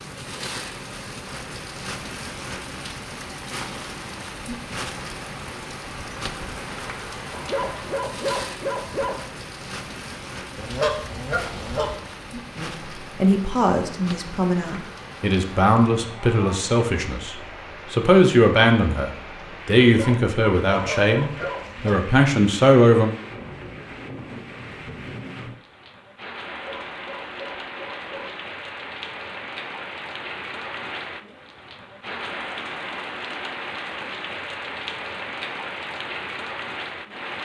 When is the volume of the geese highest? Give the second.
11 s.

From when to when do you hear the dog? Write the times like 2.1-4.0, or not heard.
7.3-9.2, 19.8-21.7, 26.4-28.4.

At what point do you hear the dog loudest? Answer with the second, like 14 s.
8 s.